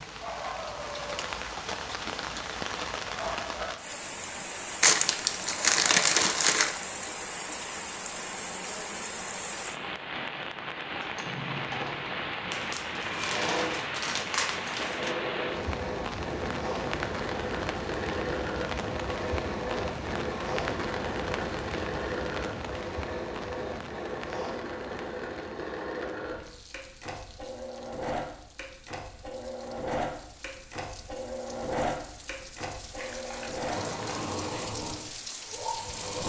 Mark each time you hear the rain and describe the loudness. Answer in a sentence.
You can hear the rain from 0.0 to 36.2 s, getting quieter.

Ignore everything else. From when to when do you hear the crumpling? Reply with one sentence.
You can hear the crumpling from 4.8 to 6.8 s, from 12.5 to 15.2 s and from 33.0 to 34.6 s.